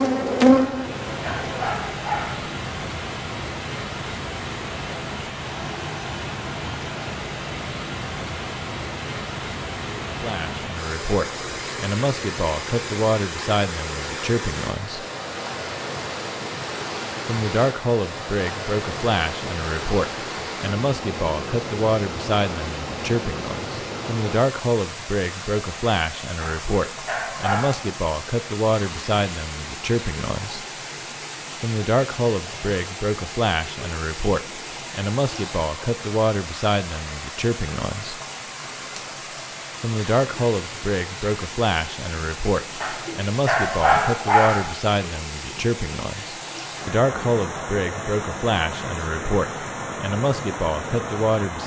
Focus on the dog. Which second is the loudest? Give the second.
44 s.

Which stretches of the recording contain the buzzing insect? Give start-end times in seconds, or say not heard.
0.0-1.8.